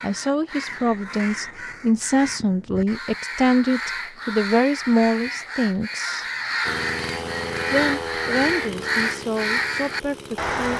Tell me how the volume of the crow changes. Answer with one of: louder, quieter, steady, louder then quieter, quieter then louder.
louder.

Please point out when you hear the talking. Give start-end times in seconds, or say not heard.
0.0-6.2, 7.7-10.7.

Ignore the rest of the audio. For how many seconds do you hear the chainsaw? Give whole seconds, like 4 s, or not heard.
4 s.